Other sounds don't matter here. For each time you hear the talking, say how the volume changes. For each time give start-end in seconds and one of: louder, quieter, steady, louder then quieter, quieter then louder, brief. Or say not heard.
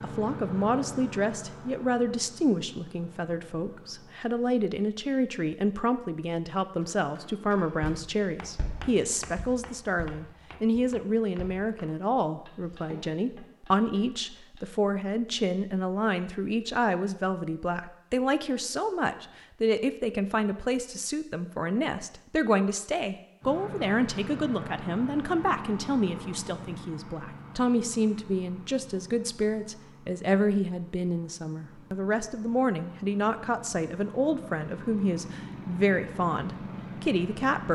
0.0-37.7 steady.